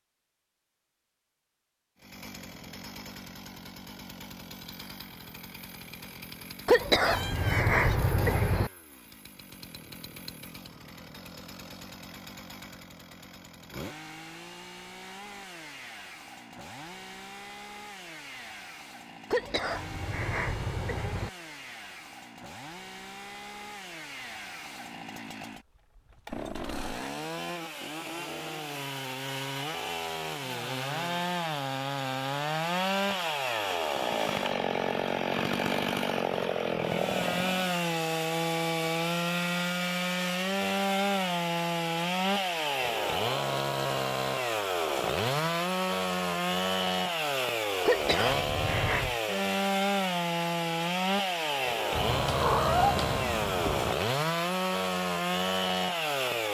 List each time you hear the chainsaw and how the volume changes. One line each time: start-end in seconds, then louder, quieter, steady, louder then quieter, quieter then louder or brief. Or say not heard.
1.9-56.4 louder.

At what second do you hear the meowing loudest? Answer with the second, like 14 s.
53 s.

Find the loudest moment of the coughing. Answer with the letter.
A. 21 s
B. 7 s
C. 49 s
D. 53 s
B.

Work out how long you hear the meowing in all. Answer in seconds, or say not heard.
4 s.